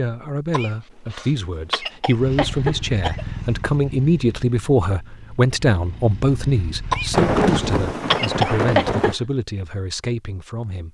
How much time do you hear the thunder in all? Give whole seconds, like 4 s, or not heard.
2 s.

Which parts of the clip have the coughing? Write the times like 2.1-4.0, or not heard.
0.5-3.2, 6.9-9.2.